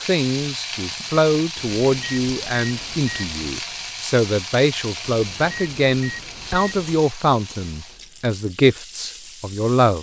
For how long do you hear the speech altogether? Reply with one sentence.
The speech can be heard for 10 seconds in total.